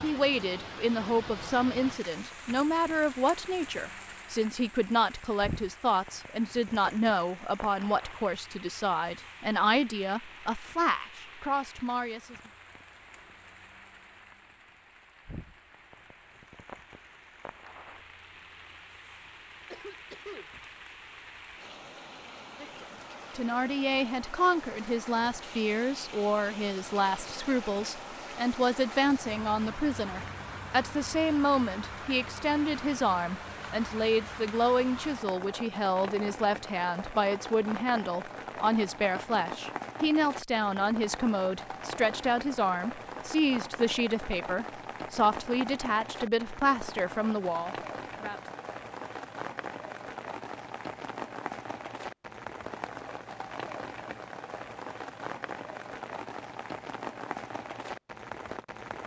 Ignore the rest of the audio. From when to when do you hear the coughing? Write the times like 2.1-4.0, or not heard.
19.7-20.5.